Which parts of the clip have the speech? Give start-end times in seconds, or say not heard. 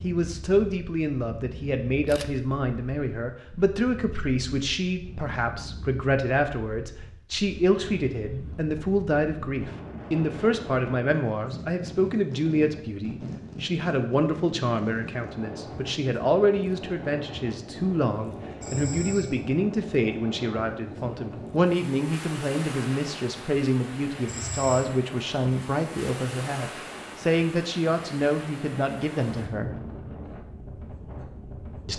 0.0-29.8.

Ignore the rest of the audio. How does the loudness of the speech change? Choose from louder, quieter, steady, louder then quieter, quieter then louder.
steady.